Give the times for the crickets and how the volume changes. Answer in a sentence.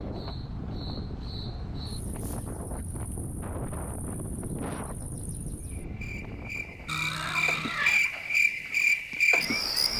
The crickets can be heard from 0.0 to 9.9 s, getting quieter then louder.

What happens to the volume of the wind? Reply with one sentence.
The volume of the wind goes down.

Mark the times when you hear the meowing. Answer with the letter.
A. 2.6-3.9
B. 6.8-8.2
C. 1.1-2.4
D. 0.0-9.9
B.